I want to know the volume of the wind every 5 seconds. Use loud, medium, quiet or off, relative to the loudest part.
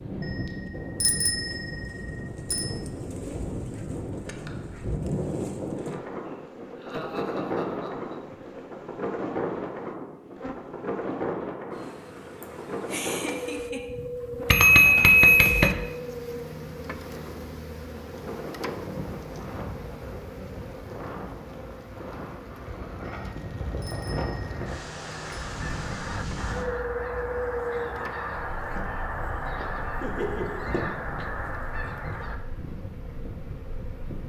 loud, loud, loud, medium, medium, loud, medium.